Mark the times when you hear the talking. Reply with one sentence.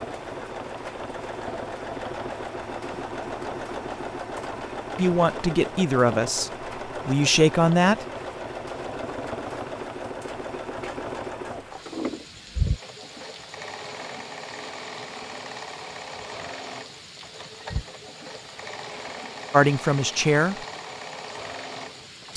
The talking can be heard from 5.0 to 8.1 s and from 19.5 to 20.6 s.